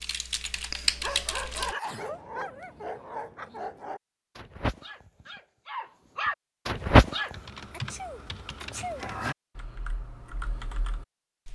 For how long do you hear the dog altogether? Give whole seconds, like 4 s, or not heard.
7 s.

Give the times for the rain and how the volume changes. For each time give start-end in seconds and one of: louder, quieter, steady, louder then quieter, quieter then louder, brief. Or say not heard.
not heard.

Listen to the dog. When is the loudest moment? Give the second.
7 s.